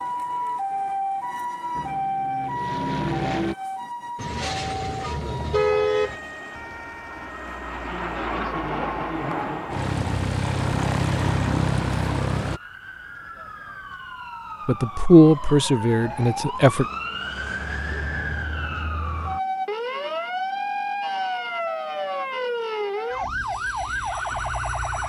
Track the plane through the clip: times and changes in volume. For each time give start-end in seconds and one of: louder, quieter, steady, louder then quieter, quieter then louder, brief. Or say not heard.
1.7-3.5 brief
5.5-12.6 louder.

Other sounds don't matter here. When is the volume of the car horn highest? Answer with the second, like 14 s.
6 s.